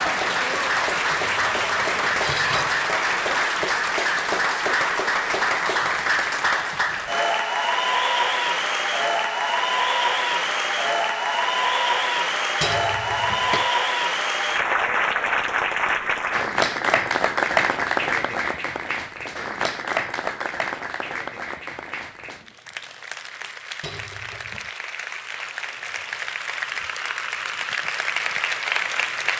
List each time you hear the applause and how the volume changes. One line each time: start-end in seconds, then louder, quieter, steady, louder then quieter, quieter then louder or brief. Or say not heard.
0.0-29.3 quieter.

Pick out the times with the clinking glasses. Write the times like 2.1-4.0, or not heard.
1.1-2.9, 12.6-13.7, 23.8-24.6.